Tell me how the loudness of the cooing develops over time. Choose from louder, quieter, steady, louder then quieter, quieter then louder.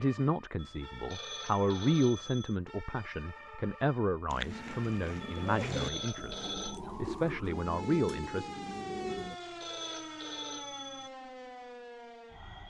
louder then quieter.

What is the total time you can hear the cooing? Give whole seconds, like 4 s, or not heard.
5 s.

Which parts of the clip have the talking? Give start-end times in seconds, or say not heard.
0.0-8.5.